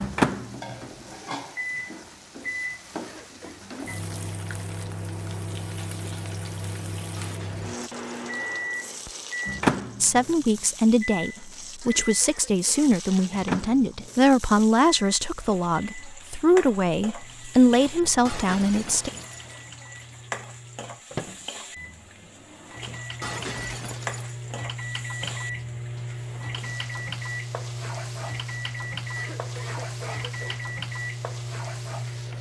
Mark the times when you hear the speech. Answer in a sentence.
The speech can be heard from 10.0 to 19.1 s.